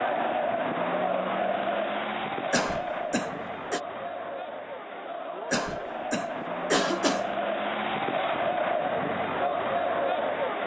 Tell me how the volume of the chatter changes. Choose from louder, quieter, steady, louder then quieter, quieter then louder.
quieter then louder.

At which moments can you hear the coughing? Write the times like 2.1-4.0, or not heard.
2.5-3.8, 5.5-7.3.